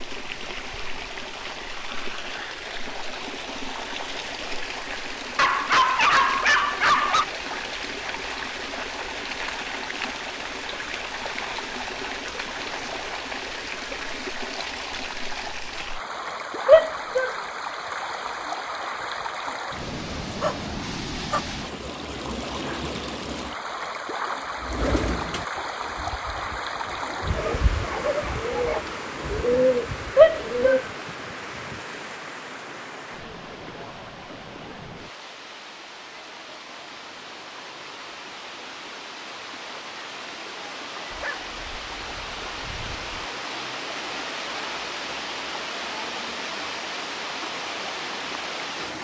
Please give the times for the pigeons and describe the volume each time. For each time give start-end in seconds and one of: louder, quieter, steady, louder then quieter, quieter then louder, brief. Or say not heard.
24.6-30.9 quieter then louder.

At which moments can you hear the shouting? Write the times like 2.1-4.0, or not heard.
16.6-17.3, 30.1-30.8.